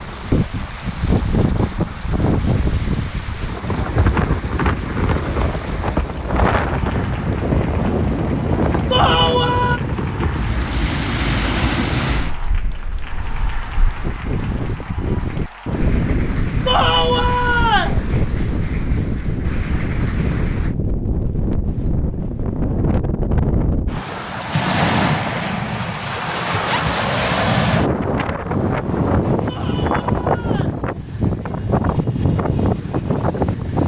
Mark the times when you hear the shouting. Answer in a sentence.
The shouting can be heard from 8.9 to 9.8 s, from 16.6 to 18.0 s and from 29.4 to 30.8 s.